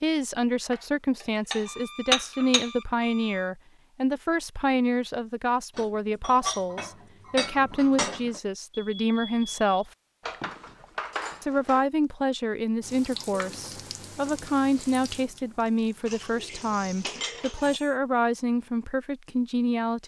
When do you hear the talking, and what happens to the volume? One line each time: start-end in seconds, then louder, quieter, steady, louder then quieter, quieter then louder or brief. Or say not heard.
0.0-9.9 steady
11.4-20.0 steady.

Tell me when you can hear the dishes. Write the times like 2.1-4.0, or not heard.
0.7-2.7, 5.8-8.4, 10.2-11.8, 16.1-17.8.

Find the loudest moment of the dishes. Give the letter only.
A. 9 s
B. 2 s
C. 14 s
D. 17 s
B.